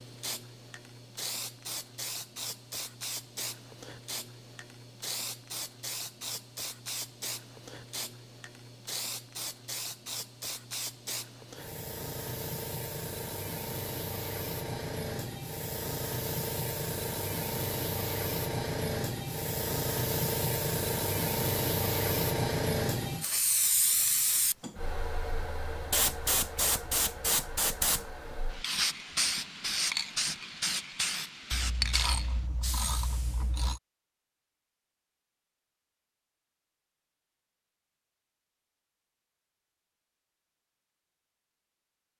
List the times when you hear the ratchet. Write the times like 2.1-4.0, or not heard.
31.5-33.8.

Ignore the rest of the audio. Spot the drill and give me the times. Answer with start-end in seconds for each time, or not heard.
not heard.